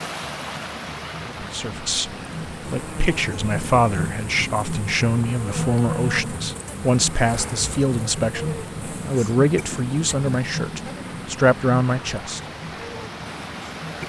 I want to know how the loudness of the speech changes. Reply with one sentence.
The loudness of the speech stays about the same.